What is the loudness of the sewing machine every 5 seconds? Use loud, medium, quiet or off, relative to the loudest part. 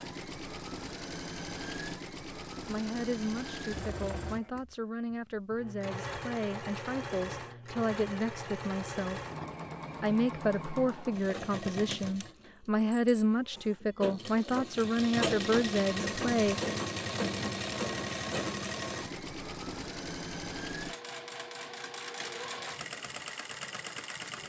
medium, medium, medium, loud, medium.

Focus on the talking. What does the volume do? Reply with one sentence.
The loudness of the talking goes up.